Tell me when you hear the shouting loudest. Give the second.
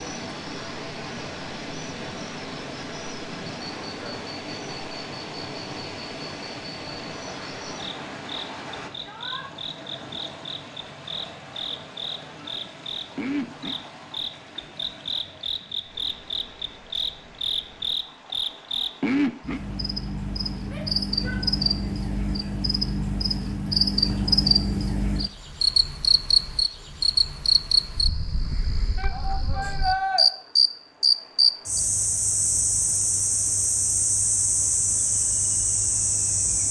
30 s.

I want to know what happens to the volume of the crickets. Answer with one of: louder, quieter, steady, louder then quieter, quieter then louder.
louder.